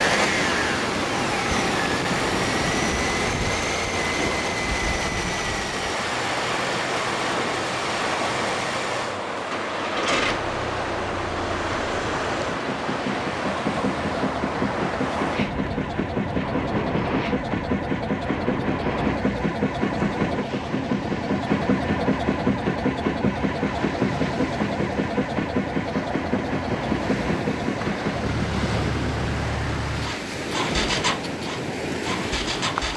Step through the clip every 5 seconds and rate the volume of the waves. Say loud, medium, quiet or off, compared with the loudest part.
loud, loud, loud, loud, medium, loud, loud.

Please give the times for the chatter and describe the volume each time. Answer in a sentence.
You can't hear the chatter here.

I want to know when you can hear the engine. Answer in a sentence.
The engine can be heard from 0.0 to 32.9 s.